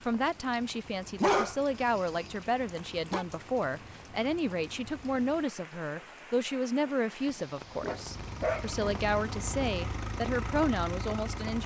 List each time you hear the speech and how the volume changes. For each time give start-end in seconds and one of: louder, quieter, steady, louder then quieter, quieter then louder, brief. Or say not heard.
0.0-11.6 steady.